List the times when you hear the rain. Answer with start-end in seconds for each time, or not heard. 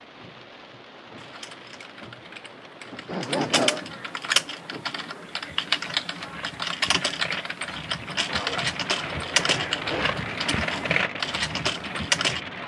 0.0-12.6.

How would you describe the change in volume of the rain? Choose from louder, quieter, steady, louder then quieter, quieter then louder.
louder.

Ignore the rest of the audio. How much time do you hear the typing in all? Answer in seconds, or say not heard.
11 s.